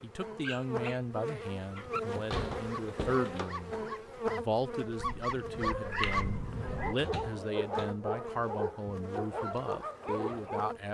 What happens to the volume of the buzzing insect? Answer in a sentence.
The volume of the buzzing insect goes down.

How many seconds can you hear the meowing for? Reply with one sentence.
The meowing can be heard for 2 seconds in total.